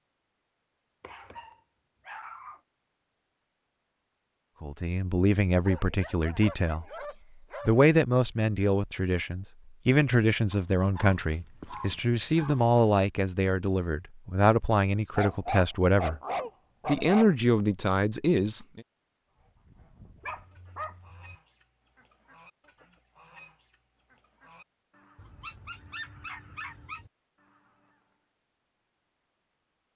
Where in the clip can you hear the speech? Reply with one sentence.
The speech can be heard from 4.6 to 6.8 s, from 7.7 to 16.2 s and from 16.9 to 18.8 s.